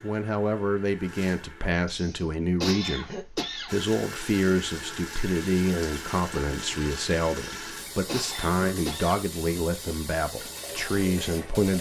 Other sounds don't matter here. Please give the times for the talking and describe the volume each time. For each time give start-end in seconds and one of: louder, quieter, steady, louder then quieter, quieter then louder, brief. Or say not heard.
0.0-11.7 steady.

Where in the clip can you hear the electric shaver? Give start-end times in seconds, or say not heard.
not heard.